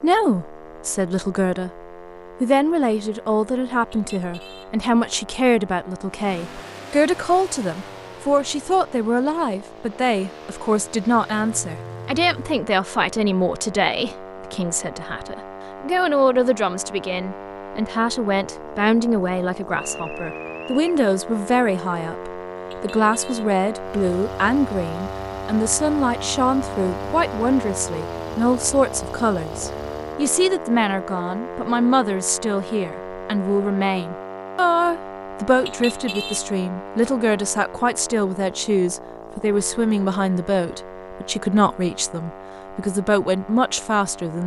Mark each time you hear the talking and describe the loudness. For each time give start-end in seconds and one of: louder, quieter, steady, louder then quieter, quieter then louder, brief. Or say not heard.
0.0-1.8 brief
2.4-44.4 steady.